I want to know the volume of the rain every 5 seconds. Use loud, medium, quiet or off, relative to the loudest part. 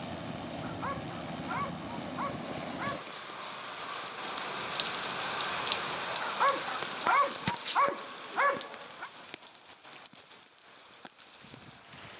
loud, loud, quiet.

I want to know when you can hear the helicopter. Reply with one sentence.
The helicopter can be heard from 0.0 to 3.0 s.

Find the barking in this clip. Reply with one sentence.
You can hear the barking from 0.6 to 3.1 s and from 6.2 to 9.1 s.